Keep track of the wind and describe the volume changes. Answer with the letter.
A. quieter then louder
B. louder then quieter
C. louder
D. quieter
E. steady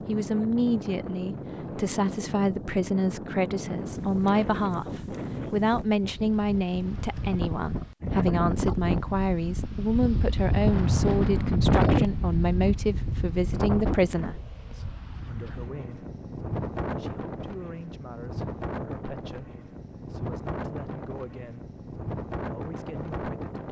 B.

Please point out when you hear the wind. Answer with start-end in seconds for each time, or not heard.
0.0-23.6.